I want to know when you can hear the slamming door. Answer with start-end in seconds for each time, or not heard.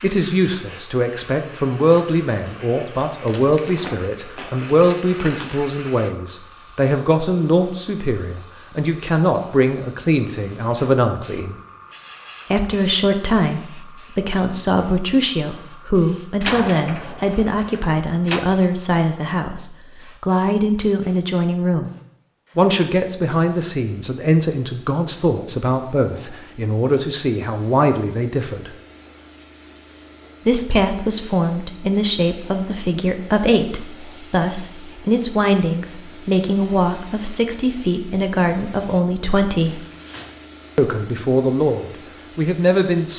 16.4-18.4.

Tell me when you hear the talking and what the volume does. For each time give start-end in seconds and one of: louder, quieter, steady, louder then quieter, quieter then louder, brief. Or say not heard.
0.0-11.6 steady
12.5-21.9 steady
22.6-28.8 steady
30.4-39.9 steady
40.8-43.1 brief.